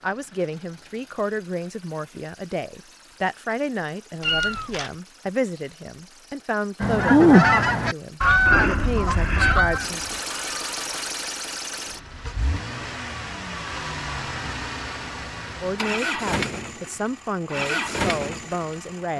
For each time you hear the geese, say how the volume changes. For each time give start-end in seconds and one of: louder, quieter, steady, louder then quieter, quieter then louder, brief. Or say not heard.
6.8-10.9 quieter.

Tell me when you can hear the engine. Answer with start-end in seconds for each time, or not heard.
0.0-19.1.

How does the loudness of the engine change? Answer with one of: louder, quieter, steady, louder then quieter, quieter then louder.
louder.